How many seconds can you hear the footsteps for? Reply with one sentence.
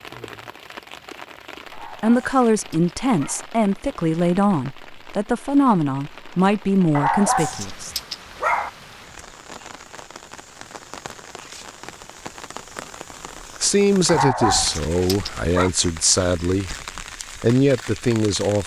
You can't hear the footsteps here.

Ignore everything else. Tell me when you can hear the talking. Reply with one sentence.
The talking can be heard from 1.8 to 8.0 s, from 13.6 to 16.8 s and from 17.4 to 18.6 s.